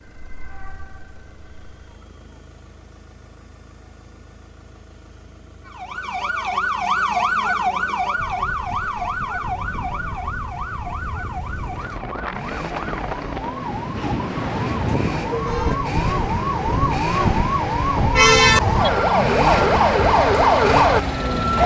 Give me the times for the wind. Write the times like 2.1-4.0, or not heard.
8.2-21.6.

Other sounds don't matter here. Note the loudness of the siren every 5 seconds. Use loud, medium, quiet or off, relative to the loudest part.
quiet, medium, quiet, loud, loud.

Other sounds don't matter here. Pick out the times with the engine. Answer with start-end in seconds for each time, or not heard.
0.0-21.6.